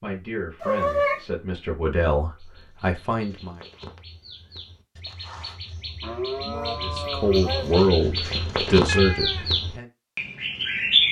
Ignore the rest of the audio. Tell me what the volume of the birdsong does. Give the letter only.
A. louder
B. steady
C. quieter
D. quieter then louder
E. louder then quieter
A.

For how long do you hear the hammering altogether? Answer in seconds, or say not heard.
not heard.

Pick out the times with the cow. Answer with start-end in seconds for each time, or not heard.
6.0-8.0.